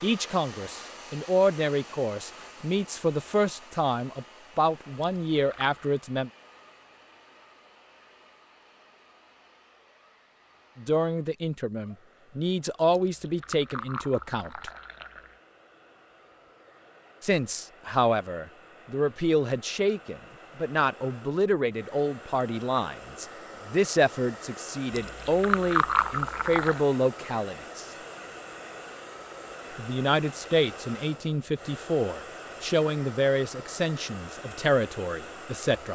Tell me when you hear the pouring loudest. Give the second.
26 s.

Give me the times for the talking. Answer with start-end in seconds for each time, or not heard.
0.0-6.3, 10.8-14.7, 17.2-27.9, 29.8-35.9.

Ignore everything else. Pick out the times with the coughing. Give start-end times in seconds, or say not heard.
not heard.